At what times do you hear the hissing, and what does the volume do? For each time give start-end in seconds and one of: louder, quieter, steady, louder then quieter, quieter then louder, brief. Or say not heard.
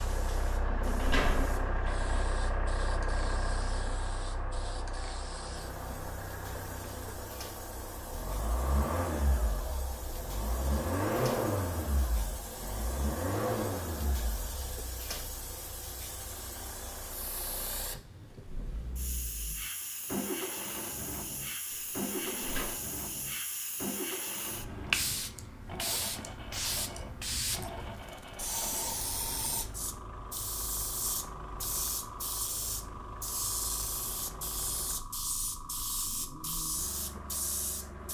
0.0-38.0 louder.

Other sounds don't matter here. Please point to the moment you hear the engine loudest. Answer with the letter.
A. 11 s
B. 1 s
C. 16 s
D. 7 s
A.